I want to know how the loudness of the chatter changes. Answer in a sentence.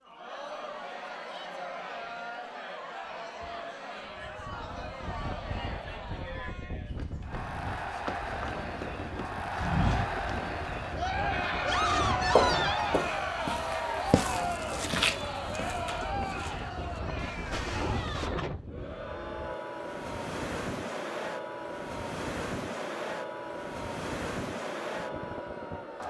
The volume of the chatter goes up, then down.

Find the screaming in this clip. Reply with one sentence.
You can hear the screaming from 11.6 to 12.9 s.